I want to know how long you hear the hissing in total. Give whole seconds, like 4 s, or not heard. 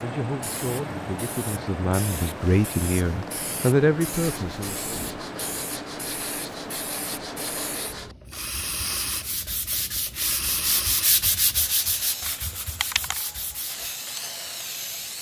15 s.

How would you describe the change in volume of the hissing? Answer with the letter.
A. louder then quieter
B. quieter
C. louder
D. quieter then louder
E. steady
E.